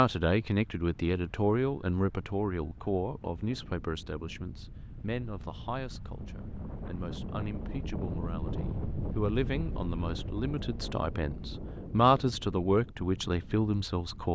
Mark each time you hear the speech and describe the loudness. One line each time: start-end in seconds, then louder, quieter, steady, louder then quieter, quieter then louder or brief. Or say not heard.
0.0-14.2 quieter then louder.